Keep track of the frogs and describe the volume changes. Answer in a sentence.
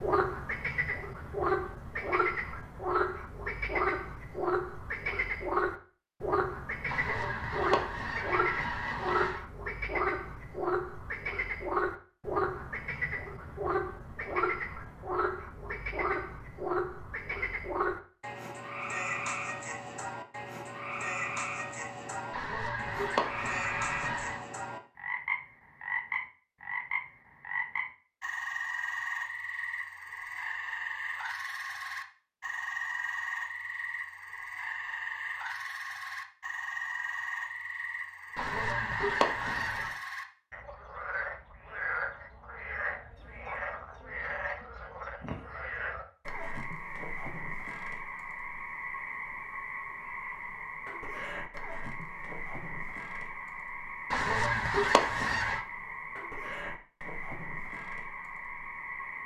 The volume of the frogs goes down.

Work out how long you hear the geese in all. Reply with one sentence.
The geese can be heard for 8 seconds in total.